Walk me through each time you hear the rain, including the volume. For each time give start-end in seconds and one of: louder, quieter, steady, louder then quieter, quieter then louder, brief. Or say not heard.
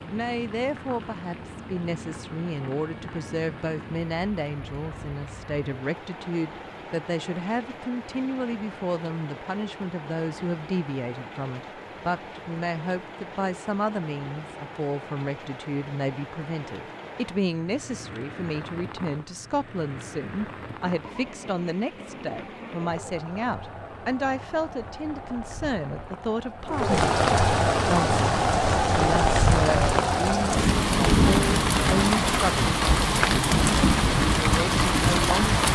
0.0-35.7 louder.